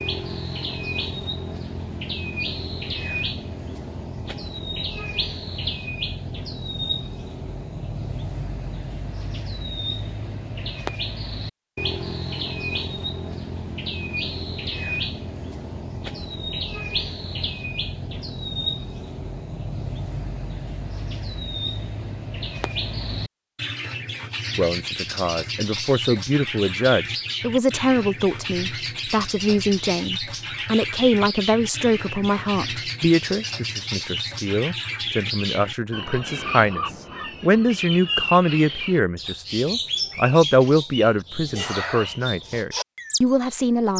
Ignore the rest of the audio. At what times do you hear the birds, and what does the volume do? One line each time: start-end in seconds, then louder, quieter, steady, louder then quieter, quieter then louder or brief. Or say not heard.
0.0-43.9 steady.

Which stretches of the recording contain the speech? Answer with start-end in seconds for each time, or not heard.
24.6-43.9.